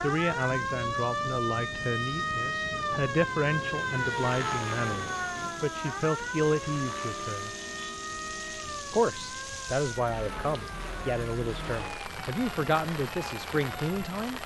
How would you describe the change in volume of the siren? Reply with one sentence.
The loudness of the siren goes down.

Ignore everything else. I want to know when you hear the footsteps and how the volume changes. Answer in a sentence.
You can't hear the footsteps here.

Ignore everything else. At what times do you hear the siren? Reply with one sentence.
The siren can be heard from 0.0 to 14.4 s.